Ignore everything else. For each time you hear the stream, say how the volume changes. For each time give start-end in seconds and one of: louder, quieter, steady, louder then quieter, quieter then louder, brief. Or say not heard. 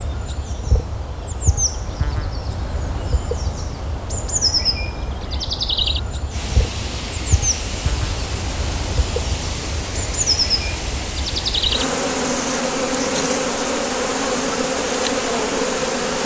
6.3-16.2 steady.